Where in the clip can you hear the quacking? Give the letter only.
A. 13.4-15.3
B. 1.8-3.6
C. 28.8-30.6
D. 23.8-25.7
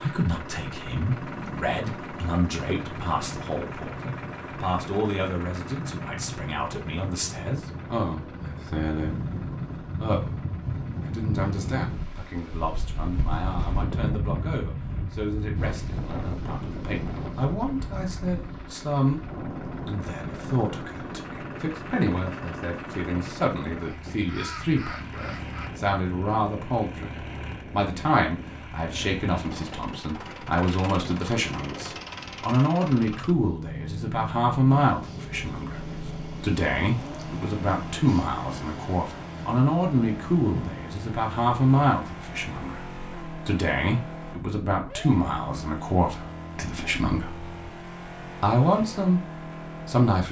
D.